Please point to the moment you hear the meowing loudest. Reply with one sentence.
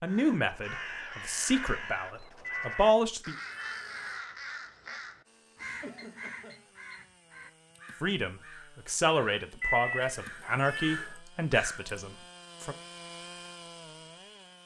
The loudest moment of the meowing is at 10 seconds.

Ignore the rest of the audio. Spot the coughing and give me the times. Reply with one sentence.
You can hear the coughing from 5.8 to 6.7 s.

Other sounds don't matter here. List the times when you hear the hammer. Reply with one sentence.
The hammer can't be heard in this clip.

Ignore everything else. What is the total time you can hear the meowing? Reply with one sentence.
The meowing can be heard for 3 seconds in total.